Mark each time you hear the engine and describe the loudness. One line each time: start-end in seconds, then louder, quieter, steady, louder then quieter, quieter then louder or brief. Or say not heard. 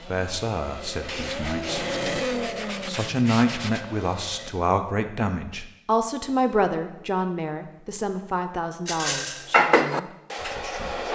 0.0-4.5 louder then quieter.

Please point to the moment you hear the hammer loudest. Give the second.
10 s.